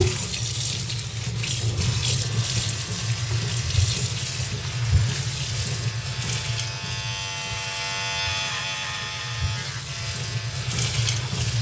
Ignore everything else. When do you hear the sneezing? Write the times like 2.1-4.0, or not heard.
not heard.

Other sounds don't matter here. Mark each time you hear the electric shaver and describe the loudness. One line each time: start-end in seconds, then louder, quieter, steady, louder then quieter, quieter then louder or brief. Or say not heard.
2.2-11.5 louder then quieter.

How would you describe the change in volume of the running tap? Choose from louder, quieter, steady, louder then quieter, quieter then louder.
quieter then louder.